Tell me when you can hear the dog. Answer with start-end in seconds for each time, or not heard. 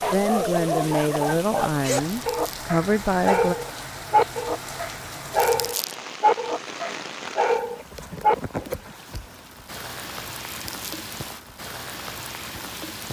0.0-8.8.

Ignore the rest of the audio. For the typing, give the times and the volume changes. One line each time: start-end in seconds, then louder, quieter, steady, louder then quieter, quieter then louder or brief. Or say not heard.
not heard.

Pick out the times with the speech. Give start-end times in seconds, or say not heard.
0.1-3.5.